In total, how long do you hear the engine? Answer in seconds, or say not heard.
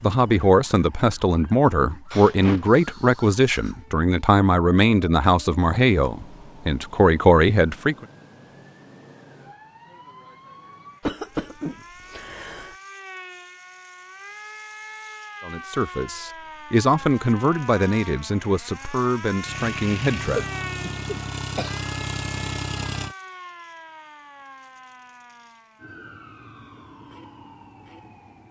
4 s.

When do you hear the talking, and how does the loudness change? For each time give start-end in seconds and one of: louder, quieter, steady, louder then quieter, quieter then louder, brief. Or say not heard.
0.0-8.1 steady
15.4-20.4 louder then quieter.